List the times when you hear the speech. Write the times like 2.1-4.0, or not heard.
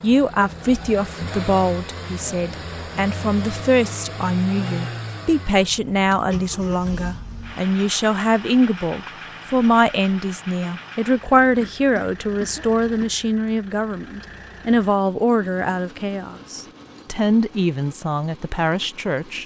0.0-19.4.